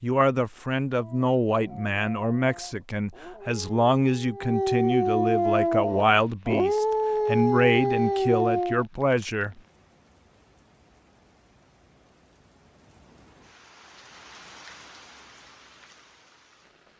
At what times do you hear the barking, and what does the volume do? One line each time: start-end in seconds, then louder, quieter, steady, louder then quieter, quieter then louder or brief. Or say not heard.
0.9-8.8 louder.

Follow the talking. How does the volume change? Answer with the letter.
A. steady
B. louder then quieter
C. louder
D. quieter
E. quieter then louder
A.